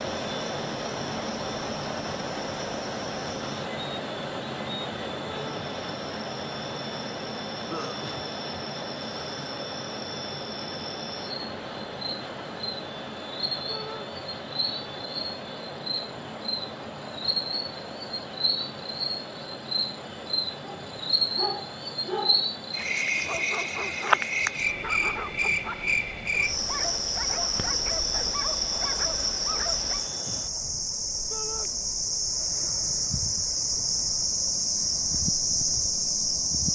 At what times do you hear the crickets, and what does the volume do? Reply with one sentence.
The crickets can be heard from 0.0 to 36.6 s, getting louder.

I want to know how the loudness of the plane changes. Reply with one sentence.
The volume of the plane goes down.